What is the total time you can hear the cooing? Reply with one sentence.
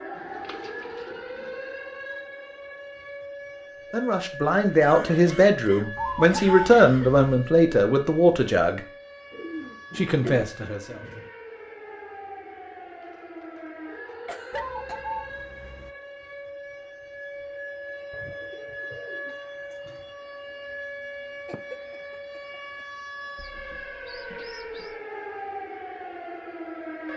The cooing can be heard for 10 seconds in total.